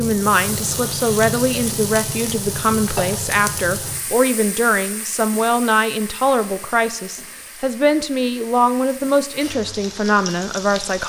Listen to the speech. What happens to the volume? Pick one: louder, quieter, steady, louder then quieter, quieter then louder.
steady.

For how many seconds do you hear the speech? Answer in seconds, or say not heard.
11 s.